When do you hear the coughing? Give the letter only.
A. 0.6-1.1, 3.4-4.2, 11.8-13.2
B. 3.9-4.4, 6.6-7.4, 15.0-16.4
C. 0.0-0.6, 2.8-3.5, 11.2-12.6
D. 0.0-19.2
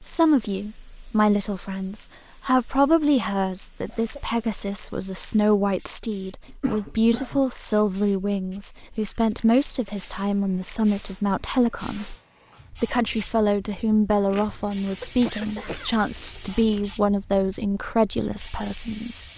B.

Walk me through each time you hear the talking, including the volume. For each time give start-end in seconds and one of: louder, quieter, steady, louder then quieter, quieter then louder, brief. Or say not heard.
0.0-19.2 steady.